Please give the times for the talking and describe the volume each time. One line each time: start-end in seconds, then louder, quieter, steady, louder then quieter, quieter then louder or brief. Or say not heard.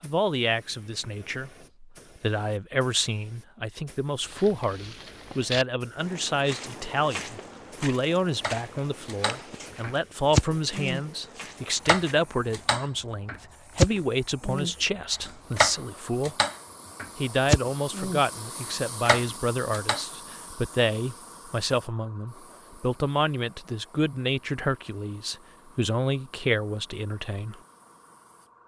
0.0-16.4 steady
17.1-27.6 steady.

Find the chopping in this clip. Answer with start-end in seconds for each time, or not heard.
8.4-11.0, 11.8-18.2, 19.1-20.0.